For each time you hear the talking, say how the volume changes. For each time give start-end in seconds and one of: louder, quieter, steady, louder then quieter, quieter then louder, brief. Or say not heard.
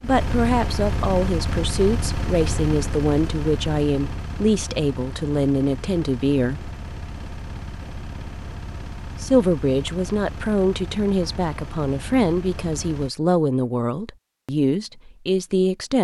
0.0-6.8 steady
9.2-15.9 steady.